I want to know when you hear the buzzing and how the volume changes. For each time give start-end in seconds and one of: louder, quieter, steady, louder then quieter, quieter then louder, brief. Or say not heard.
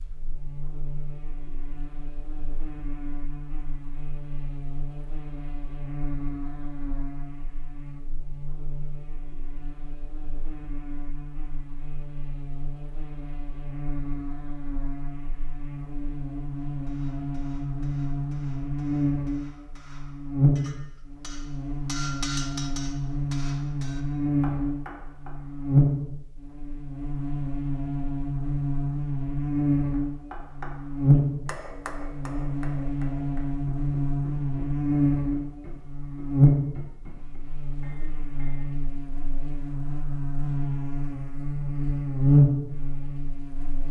0.0-43.8 louder.